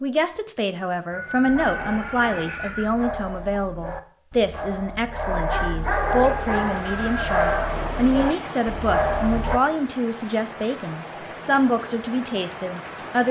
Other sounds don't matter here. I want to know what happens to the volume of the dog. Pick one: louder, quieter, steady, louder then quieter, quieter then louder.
louder.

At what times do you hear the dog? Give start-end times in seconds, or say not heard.
1.4-9.6.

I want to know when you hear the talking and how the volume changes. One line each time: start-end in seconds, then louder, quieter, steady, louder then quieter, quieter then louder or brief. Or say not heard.
0.0-13.2 steady.